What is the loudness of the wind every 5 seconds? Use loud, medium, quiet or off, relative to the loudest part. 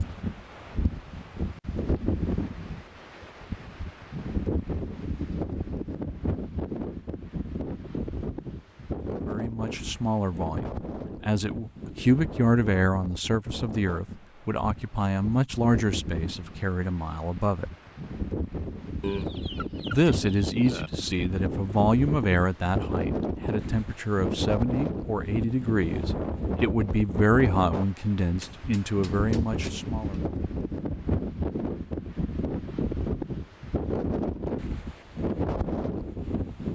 loud, loud, medium, medium, loud, loud, loud, loud.